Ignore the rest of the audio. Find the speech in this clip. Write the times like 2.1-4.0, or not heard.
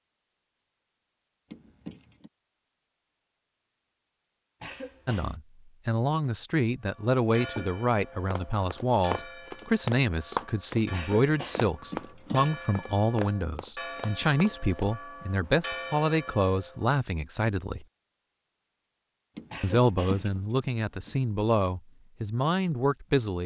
5.0-17.9, 19.6-23.4.